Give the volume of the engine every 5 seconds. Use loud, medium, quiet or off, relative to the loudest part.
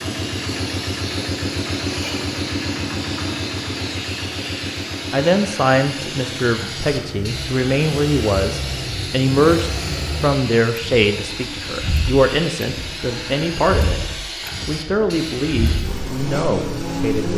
loud, medium, medium, loud.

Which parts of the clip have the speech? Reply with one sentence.
The speech can be heard from 5.1 to 14.0 s and from 14.7 to 17.3 s.